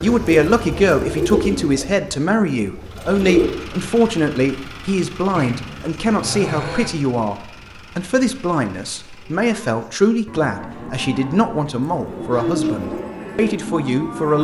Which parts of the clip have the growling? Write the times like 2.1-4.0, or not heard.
5.3-6.9.